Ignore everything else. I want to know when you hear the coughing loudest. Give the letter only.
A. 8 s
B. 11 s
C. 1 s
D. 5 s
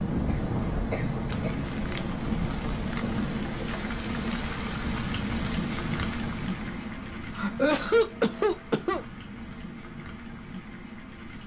A.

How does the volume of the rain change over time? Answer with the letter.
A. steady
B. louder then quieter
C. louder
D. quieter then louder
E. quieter
E.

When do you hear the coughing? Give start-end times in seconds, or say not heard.
0.2-1.7, 7.3-9.0.